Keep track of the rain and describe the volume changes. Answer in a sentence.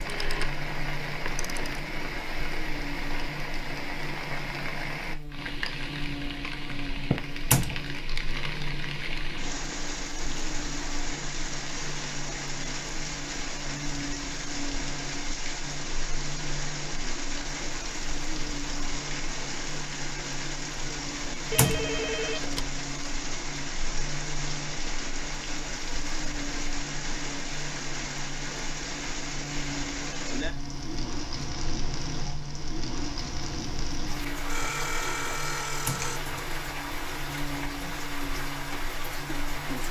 The loudness of the rain stays about the same.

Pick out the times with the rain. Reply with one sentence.
The rain can be heard from 0.0 to 39.8 s.